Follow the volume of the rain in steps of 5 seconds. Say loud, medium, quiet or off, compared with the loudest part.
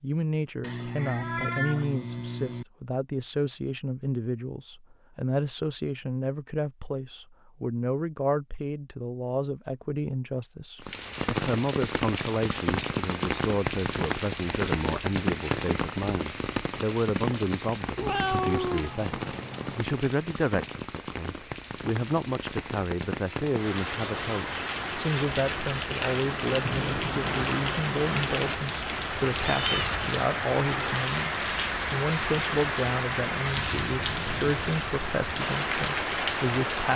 off, off, loud, loud, medium, loud, loud, loud.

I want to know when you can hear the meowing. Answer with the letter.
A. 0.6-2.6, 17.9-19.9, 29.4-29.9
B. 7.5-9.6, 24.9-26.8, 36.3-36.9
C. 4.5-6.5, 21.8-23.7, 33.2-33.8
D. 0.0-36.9
A.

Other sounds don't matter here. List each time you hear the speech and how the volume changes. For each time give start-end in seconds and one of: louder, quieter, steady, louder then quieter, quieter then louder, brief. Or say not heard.
0.0-36.9 steady.